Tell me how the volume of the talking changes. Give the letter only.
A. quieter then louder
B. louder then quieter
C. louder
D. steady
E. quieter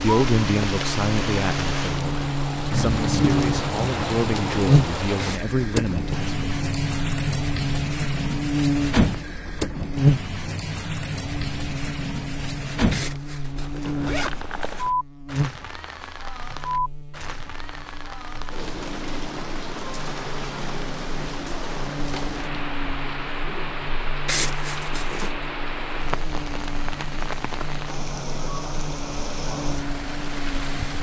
A.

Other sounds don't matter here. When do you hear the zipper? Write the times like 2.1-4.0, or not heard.
5.2-6.1, 12.9-14.9, 24.2-25.3.